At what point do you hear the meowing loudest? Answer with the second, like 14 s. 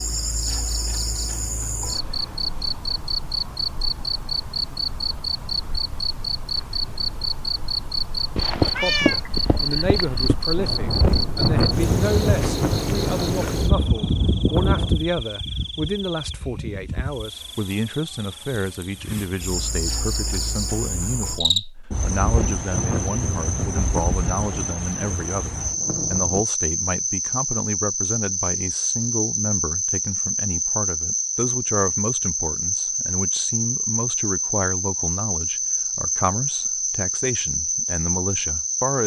9 s.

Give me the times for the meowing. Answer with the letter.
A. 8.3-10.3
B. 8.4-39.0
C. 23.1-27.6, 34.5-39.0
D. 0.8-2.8
A.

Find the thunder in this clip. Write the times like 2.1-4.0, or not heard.
10.6-15.0, 21.9-26.4.